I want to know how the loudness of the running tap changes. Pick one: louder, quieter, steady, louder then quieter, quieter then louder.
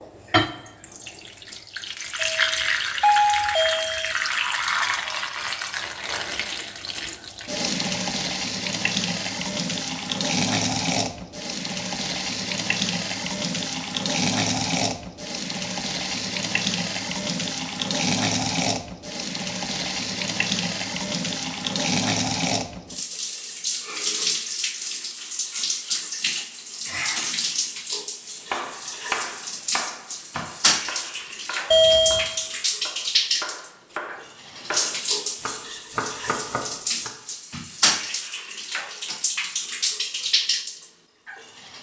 steady.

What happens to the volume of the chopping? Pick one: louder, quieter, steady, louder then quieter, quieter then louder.
quieter then louder.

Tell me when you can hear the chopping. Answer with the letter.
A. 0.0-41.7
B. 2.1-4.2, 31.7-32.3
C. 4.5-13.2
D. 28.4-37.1
D.